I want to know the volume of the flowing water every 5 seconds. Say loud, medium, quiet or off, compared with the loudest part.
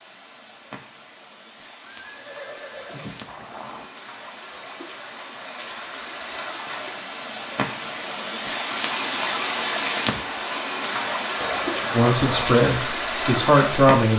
quiet, loud, loud.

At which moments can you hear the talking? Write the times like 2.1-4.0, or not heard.
11.9-14.1.